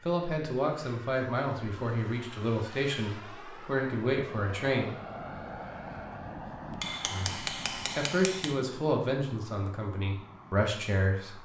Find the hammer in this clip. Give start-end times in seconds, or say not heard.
6.8-8.6.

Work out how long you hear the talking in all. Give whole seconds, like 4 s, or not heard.
9 s.